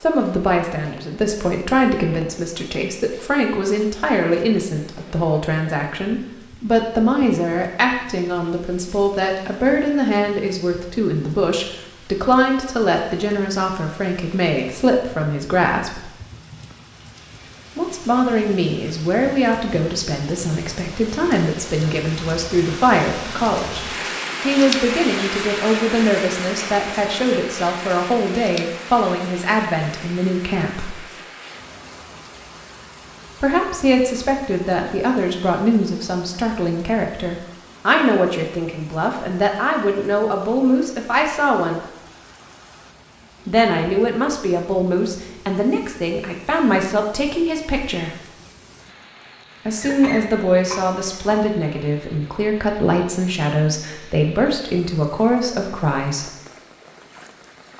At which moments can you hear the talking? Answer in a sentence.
You can hear the talking from 0.0 to 16.1 s, from 17.8 to 30.9 s, from 33.4 to 41.8 s, from 43.5 to 48.1 s and from 49.6 to 56.3 s.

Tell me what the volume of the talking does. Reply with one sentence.
The volume of the talking stays about the same.